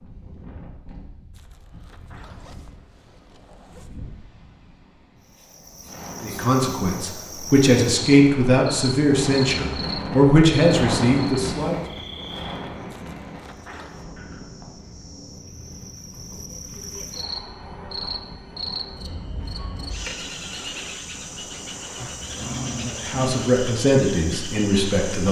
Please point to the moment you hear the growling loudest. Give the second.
23 s.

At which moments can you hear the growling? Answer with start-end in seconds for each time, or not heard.
21.9-23.5.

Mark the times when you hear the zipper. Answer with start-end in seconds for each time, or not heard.
1.3-4.0, 12.8-14.0.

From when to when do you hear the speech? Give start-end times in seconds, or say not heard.
6.2-11.8, 22.9-25.2.